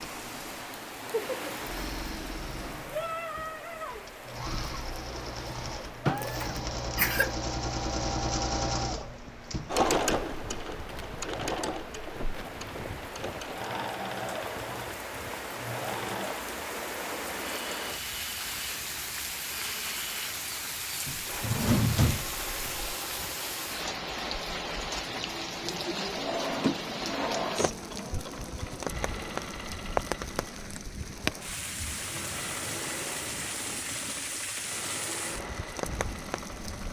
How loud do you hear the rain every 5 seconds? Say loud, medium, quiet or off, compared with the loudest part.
loud, medium, medium, loud, loud, loud, loud, loud.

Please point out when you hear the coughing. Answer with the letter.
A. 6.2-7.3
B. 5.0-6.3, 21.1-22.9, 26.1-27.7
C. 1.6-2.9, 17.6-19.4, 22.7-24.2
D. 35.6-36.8
A.